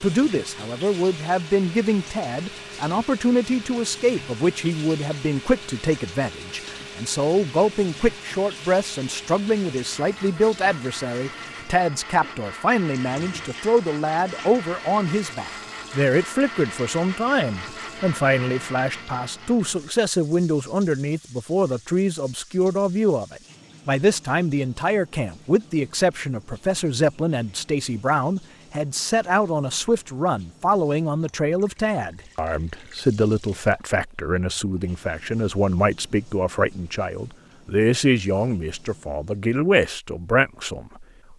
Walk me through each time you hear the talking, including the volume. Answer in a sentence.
The talking can be heard from 0.0 to 41.3 s, at a steady volume.